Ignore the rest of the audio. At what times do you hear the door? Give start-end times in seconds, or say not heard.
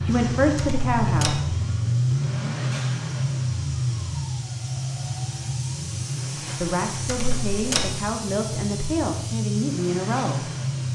0.6-1.4, 7.0-8.0.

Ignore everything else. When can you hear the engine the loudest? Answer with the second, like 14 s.
2 s.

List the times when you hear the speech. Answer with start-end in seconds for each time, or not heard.
0.0-1.9, 6.4-10.5.